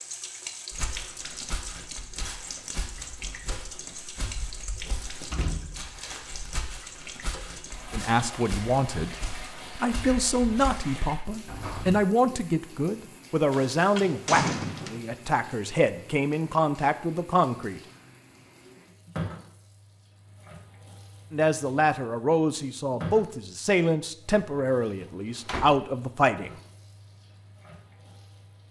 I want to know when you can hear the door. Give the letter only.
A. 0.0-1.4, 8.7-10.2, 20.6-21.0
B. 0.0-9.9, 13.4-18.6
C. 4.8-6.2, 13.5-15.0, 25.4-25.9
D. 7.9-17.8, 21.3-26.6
C.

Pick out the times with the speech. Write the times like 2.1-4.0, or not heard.
7.9-17.8, 21.3-26.6.